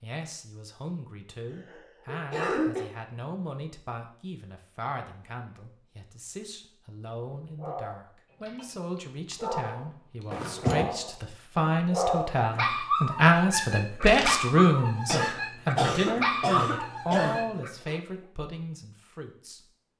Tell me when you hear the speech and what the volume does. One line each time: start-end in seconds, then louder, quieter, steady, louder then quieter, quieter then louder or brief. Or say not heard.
0.0-19.6 louder then quieter.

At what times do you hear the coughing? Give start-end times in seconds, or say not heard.
1.5-2.9, 10.3-10.8, 15.1-17.4.